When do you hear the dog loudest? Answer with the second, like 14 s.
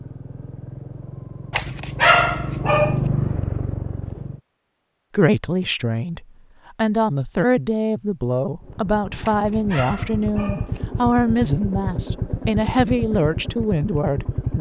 2 s.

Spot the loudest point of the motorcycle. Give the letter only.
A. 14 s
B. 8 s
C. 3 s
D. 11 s
C.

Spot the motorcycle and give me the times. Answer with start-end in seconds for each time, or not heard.
0.0-4.4, 8.6-14.5.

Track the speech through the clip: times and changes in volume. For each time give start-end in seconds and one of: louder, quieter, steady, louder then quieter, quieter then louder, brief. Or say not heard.
5.1-14.5 steady.